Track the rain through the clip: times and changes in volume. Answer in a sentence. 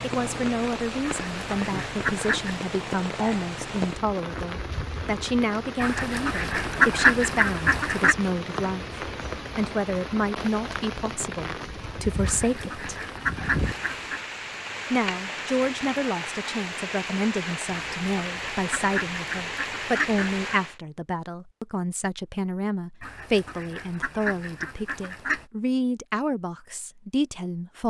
The rain can be heard from 0.0 to 20.8 s, at a steady volume.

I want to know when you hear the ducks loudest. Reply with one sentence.
The loudest moment of the ducks is at 7 seconds.